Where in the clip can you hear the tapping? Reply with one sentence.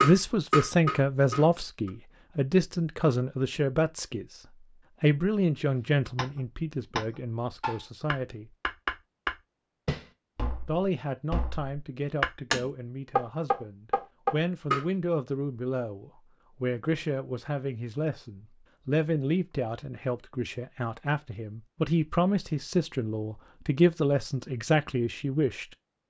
You can hear the tapping from 0.0 to 1.9 s and from 6.2 to 14.8 s.